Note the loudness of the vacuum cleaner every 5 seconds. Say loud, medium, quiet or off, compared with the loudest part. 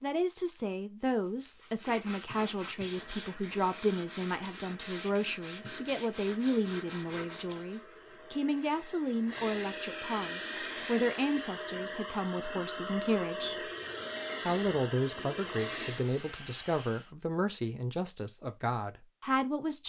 quiet, medium, loud, loud.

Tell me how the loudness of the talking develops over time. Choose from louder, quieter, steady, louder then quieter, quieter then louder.
steady.